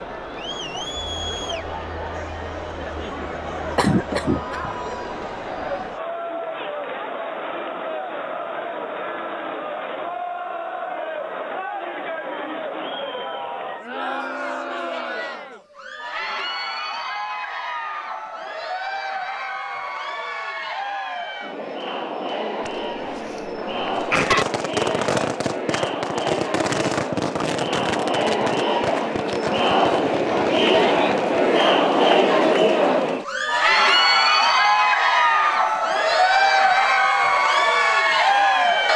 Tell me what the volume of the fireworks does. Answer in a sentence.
The loudness of the fireworks goes down.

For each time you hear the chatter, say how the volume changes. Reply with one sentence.
You can hear the chatter from 0.0 to 38.9 s, getting louder.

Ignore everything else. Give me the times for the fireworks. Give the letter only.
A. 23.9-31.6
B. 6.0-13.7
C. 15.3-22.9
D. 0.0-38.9
A.